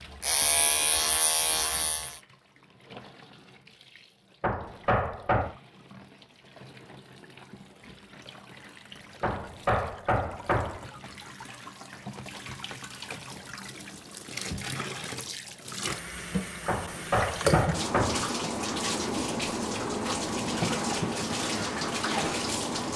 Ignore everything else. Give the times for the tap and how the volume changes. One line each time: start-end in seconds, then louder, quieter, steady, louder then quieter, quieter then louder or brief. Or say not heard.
0.0-22.9 louder.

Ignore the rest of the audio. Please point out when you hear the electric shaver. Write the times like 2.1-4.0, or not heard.
0.1-2.2.